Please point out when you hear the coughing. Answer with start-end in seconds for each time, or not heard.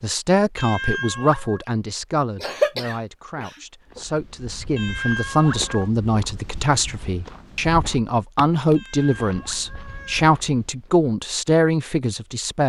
2.4-4.0.